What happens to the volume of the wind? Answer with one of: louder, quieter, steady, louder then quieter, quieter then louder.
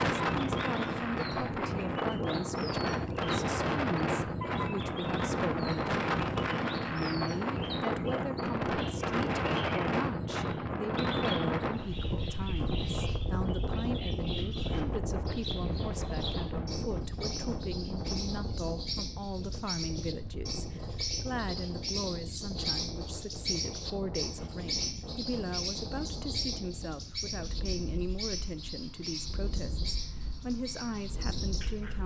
quieter.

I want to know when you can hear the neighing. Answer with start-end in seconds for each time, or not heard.
not heard.